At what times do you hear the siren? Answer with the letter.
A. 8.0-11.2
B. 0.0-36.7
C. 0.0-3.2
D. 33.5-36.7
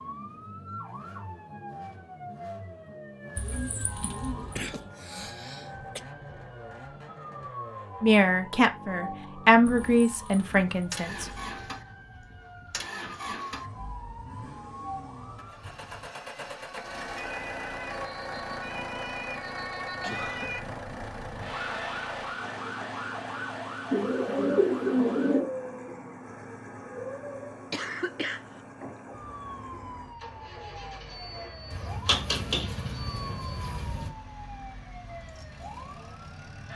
B.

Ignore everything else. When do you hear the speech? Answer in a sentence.
You can hear the speech from 8.0 to 11.2 s.